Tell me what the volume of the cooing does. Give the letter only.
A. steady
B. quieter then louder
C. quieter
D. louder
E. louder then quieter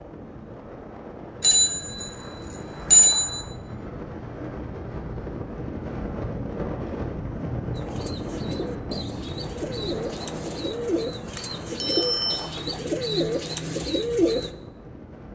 D.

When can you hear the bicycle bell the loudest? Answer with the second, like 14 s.
3 s.